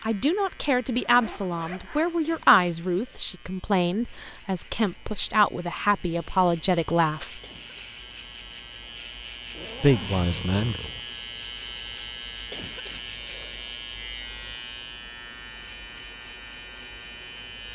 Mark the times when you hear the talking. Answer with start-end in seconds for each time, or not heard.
0.0-7.4, 9.8-10.8.